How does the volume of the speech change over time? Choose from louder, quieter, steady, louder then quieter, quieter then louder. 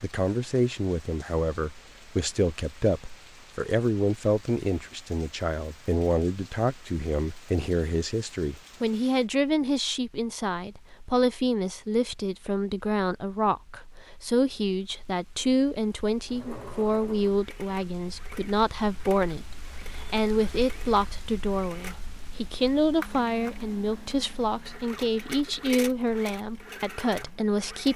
steady.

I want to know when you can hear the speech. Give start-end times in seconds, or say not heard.
0.0-27.9.